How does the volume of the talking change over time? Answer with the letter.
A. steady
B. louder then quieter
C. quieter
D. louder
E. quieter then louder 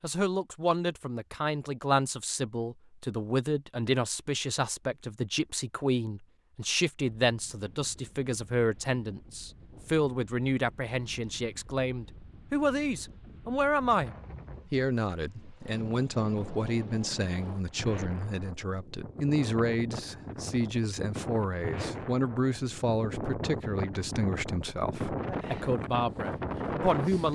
A.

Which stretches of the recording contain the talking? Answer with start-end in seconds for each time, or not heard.
0.0-27.3.